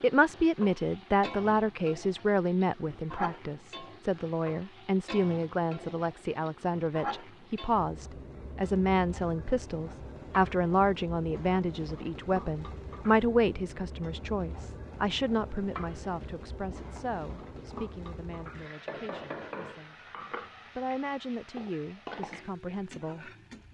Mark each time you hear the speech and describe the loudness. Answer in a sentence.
The speech can be heard from 0.0 to 19.9 s, getting quieter; and briefly from 20.8 to 23.3 s.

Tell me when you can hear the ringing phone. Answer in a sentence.
You can't hear the ringing phone here.